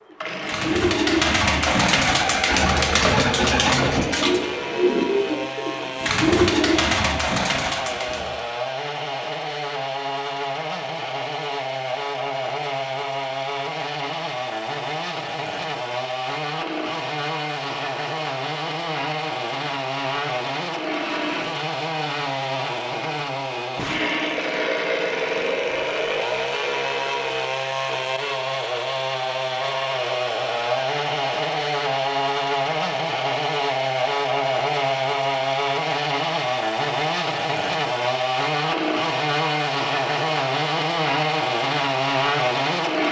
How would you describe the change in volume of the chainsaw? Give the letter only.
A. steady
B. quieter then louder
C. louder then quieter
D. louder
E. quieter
D.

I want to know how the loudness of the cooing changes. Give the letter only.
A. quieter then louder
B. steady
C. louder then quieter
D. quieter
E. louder
B.